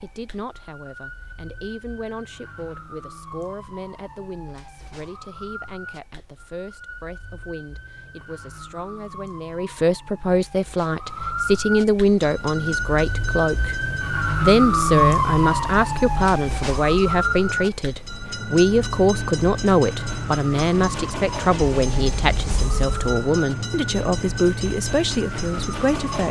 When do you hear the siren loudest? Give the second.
15 s.